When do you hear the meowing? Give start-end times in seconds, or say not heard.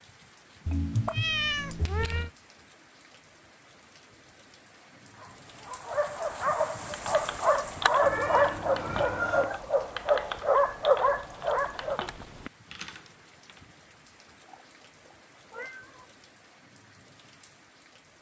0.7-2.3, 8.0-9.6, 14.4-16.1.